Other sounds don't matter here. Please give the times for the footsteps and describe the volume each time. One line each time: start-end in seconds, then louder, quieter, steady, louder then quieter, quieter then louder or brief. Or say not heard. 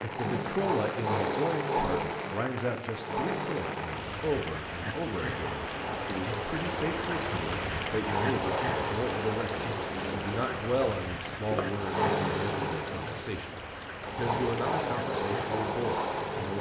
not heard.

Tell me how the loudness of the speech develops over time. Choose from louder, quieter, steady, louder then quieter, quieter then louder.
steady.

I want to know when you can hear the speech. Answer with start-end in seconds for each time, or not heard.
0.0-16.5.